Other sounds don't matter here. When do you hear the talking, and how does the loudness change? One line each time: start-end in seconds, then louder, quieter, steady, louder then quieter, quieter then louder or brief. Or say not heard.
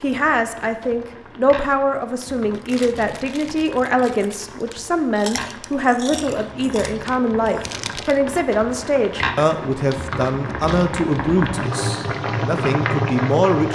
0.0-13.6 steady.